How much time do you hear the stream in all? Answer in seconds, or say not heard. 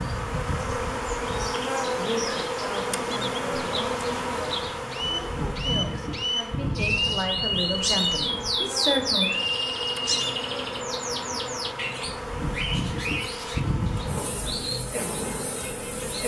not heard.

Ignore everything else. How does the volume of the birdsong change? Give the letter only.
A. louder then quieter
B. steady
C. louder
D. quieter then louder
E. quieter
A.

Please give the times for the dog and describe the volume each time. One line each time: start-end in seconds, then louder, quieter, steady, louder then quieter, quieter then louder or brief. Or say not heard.
not heard.